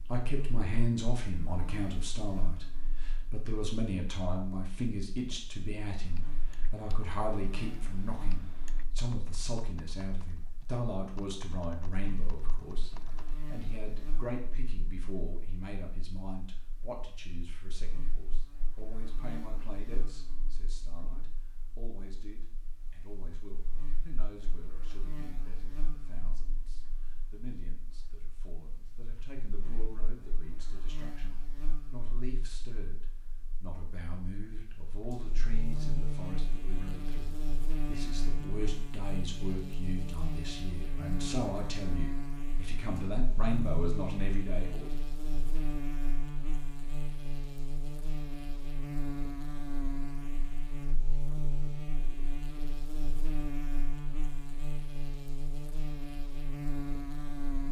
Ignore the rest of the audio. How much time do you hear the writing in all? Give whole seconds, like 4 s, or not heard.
not heard.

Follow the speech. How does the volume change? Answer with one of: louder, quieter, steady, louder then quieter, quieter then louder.
quieter then louder.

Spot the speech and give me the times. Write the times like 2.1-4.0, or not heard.
0.1-44.9.